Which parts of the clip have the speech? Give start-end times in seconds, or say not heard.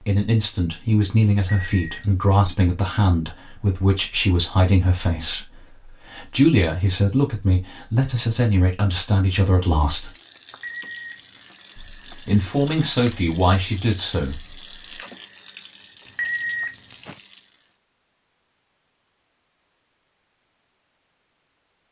0.0-10.1, 11.8-14.9.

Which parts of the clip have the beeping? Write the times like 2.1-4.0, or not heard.
1.4-2.1, 10.5-11.4, 16.1-16.9.